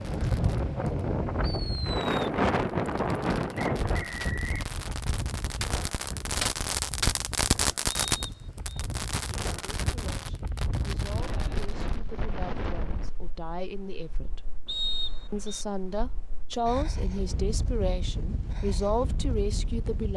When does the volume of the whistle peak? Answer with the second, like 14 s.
15 s.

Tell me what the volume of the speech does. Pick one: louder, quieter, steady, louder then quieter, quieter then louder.
louder.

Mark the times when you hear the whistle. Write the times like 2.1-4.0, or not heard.
3.5-4.5, 8.1-8.8, 14.7-15.7.